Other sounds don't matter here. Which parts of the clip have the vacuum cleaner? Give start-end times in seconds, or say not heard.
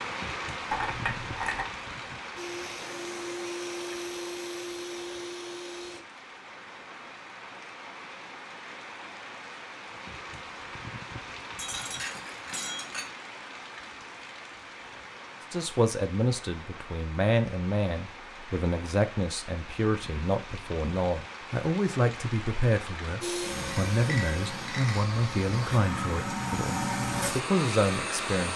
2.4-6.0, 23.2-28.5.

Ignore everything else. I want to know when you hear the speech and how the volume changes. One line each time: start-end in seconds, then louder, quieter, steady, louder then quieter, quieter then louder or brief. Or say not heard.
15.5-28.5 steady.